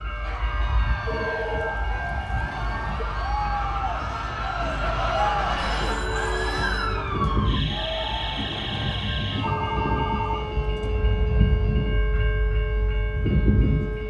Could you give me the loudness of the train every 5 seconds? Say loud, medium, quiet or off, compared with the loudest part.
medium, loud, loud.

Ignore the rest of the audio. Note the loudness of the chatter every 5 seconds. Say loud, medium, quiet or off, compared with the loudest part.
loud, loud, off.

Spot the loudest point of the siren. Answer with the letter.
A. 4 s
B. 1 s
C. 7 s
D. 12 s
C.